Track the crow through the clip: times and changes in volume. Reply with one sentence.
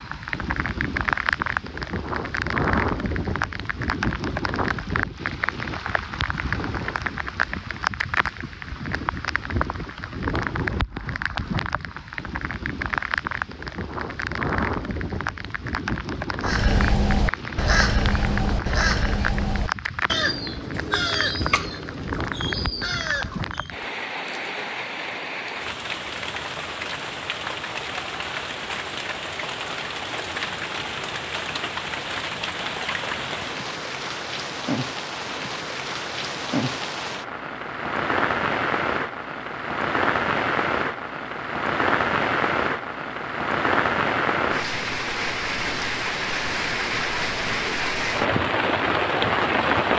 The crow can be heard from 16.4 to 23.8 s, getting quieter.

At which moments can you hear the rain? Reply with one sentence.
You can hear the rain from 0.0 to 49.9 s.